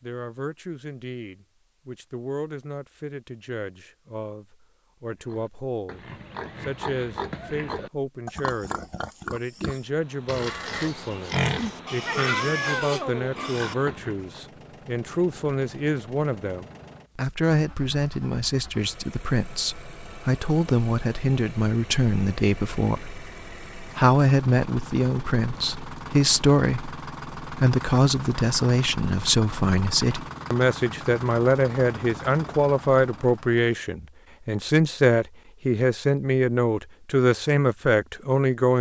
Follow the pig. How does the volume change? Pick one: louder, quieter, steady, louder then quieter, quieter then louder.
louder.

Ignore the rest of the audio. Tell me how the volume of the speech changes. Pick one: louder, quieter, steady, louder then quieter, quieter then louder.
louder.